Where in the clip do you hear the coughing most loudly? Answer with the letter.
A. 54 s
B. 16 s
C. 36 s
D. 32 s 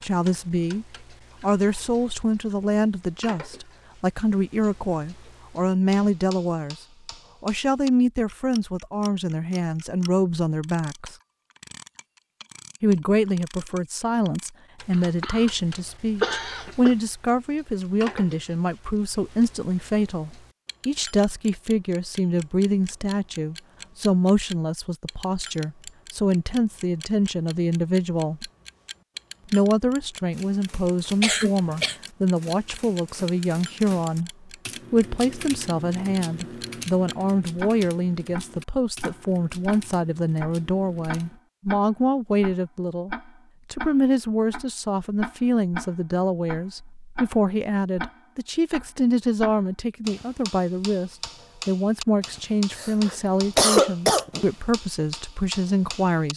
A.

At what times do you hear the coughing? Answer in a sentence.
You can hear the coughing from 14.9 to 15.5 s, from 16.2 to 16.9 s, from 31.2 to 31.9 s and from 52.7 to 54.5 s.